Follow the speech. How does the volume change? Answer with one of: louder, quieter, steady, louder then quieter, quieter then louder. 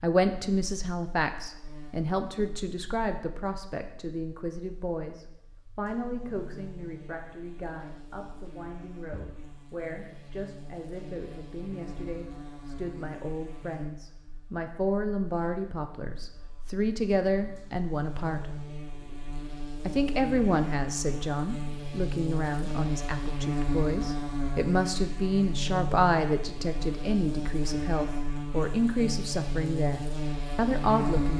quieter then louder.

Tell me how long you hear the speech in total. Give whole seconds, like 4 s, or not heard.
30 s.